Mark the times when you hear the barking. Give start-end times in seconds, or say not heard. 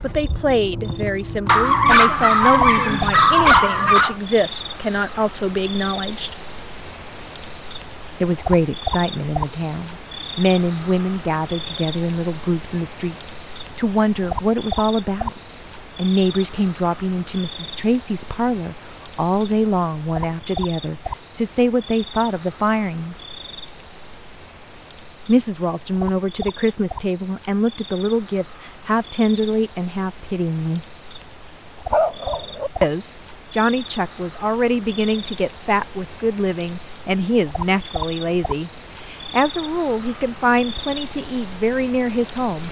1.4-4.2, 31.9-32.7.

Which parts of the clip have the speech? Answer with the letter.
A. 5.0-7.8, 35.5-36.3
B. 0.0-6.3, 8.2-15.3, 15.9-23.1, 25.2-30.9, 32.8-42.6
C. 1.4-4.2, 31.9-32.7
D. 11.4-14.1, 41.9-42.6
B.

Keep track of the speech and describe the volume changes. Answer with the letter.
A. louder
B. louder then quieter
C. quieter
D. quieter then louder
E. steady
E.